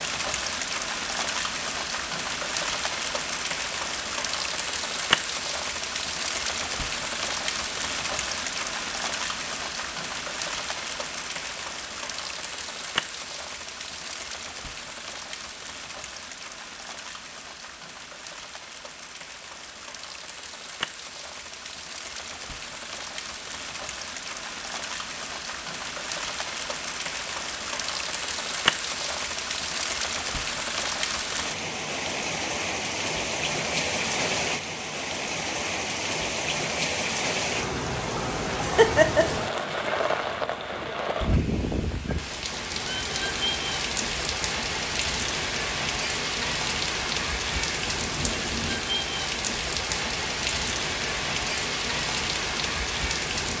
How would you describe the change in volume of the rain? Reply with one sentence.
The volume of the rain goes down, then up.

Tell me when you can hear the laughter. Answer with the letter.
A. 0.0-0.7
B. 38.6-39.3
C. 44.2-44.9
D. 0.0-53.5
B.